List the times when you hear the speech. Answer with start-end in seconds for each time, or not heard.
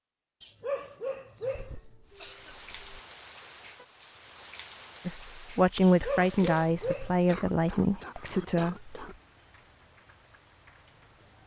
5.0-8.9.